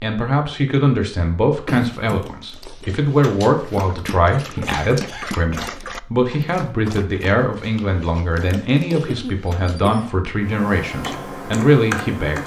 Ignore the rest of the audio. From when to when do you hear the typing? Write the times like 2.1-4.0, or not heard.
10.4-12.4.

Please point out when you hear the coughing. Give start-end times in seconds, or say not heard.
1.6-2.2, 4.7-5.8, 8.9-10.1.